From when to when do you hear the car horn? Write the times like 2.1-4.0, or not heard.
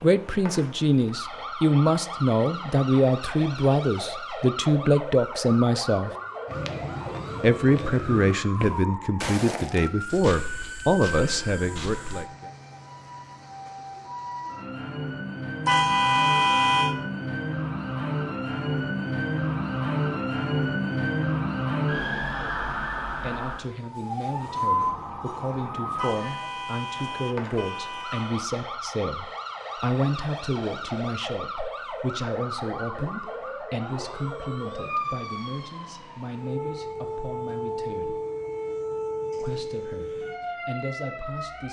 15.7-16.9, 25.9-28.4.